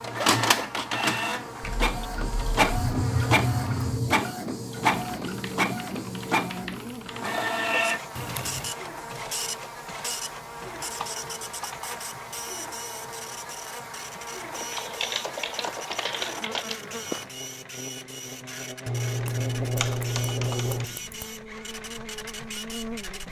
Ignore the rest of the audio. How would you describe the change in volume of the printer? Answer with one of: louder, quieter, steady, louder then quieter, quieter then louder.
quieter.